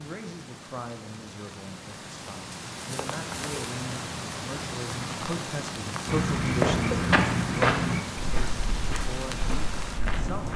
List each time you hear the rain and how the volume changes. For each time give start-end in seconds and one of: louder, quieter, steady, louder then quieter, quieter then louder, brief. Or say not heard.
0.0-10.5 louder.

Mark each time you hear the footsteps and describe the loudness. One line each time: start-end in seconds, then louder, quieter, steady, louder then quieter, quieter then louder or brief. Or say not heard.
6.0-10.5 quieter.